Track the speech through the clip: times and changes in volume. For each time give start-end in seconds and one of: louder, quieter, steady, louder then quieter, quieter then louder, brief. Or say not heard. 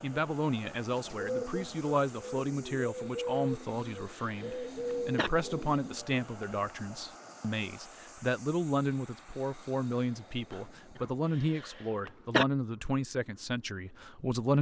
0.0-14.5 steady.